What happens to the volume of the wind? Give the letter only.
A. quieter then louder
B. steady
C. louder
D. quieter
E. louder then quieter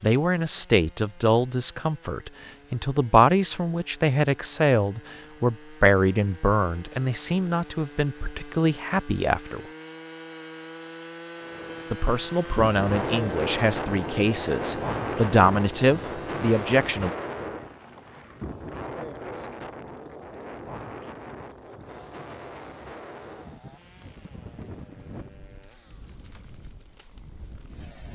D.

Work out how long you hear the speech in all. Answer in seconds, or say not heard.
15 s.